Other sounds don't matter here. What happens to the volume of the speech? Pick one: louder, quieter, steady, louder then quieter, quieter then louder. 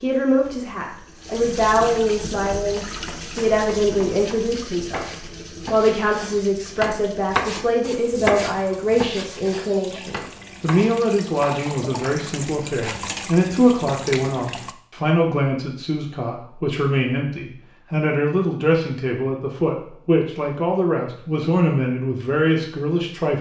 steady.